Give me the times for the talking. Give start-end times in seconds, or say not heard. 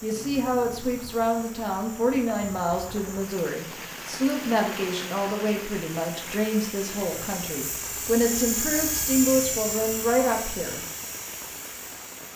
0.0-10.8.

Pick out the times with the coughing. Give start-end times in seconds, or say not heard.
not heard.